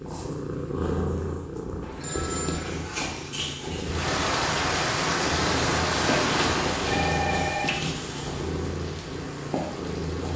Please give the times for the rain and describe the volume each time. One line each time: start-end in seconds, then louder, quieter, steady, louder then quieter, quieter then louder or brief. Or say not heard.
3.8-10.3 quieter.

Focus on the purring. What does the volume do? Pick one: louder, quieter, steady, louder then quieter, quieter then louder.
steady.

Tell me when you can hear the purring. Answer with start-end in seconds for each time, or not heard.
0.0-10.3.